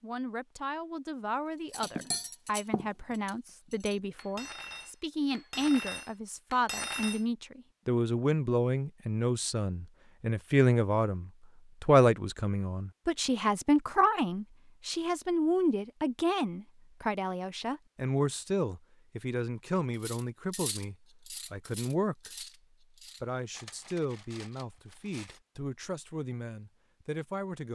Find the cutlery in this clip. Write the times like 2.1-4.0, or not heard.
1.7-7.2, 20.0-25.4.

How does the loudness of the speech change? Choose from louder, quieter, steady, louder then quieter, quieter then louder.
louder then quieter.